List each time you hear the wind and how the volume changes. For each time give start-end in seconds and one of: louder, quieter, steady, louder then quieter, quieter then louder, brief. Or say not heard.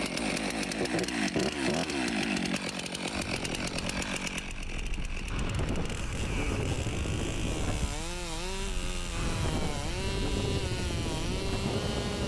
3.1-12.2 louder.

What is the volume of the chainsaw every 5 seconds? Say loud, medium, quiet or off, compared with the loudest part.
loud, medium, medium.